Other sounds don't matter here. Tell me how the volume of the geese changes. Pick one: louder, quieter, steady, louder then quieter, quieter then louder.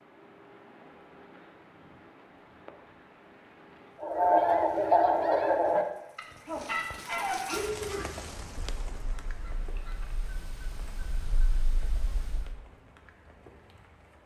quieter.